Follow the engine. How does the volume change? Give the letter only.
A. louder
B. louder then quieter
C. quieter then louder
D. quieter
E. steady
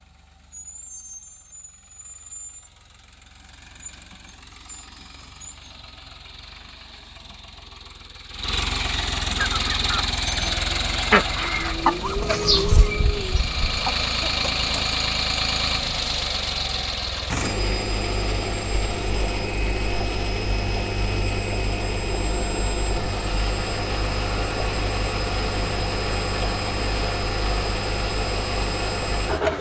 A.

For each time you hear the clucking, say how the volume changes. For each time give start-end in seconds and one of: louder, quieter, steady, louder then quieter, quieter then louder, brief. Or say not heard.
9.3-14.6 louder then quieter.